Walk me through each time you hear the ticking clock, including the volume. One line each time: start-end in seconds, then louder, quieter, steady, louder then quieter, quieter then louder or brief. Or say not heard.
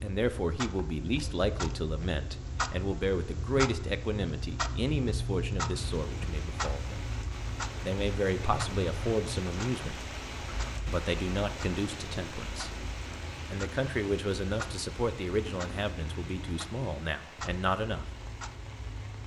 0.0-19.2 quieter.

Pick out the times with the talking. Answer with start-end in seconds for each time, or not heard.
0.0-7.0, 7.8-10.2, 10.8-12.7, 13.5-18.1.